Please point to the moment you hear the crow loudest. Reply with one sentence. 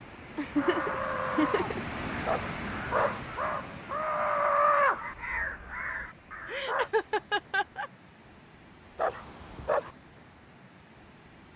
The volume of the crow peaks at 5 seconds.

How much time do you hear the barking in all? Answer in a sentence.
The barking can be heard for 2 seconds in total.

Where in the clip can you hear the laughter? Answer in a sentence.
You can hear the laughter from 0.3 to 1.8 s and from 6.5 to 7.9 s.